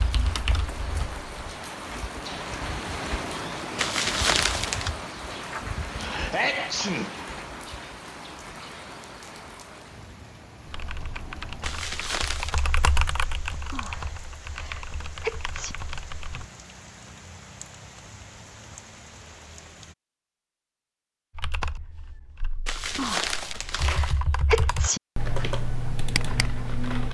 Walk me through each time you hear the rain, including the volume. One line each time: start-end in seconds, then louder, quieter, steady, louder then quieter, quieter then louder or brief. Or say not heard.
0.0-19.9 quieter.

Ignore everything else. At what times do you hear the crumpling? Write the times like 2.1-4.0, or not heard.
3.8-4.9, 11.6-12.7, 22.6-24.2.